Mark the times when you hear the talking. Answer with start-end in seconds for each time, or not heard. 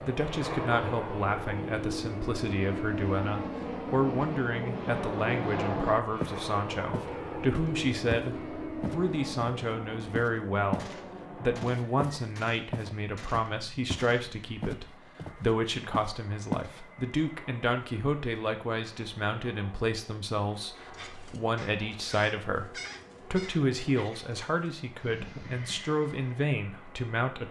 0.1-27.4.